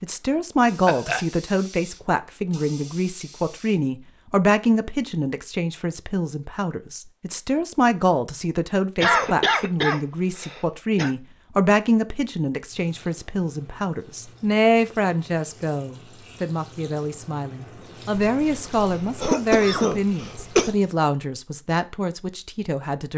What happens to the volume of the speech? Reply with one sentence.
The loudness of the speech stays about the same.